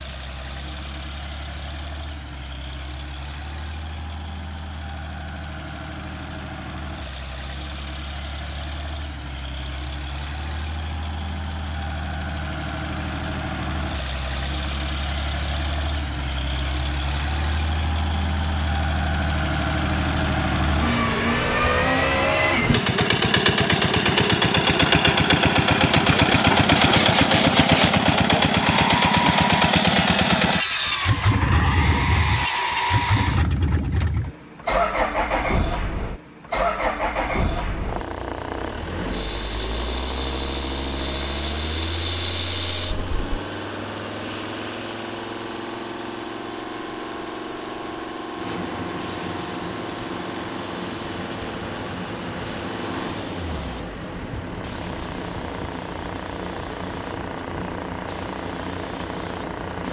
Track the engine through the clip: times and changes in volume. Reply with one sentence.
You can hear the engine from 0.0 to 59.8 s, getting louder then quieter.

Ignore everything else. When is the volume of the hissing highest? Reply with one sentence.
The loudest moment of the hissing is at 42 seconds.